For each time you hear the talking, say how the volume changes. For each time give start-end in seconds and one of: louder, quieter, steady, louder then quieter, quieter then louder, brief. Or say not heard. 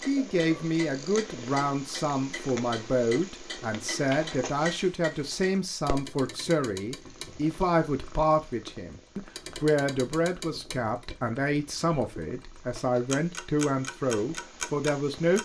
0.1-15.4 steady.